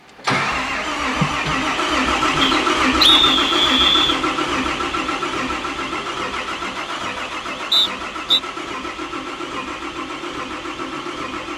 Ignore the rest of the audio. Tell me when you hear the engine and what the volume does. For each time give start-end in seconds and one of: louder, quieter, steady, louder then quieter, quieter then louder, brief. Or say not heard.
0.0-11.5 quieter.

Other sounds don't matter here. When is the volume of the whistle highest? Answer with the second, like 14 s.
3 s.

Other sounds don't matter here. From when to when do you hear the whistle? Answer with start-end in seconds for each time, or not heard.
2.4-4.2, 7.7-8.4.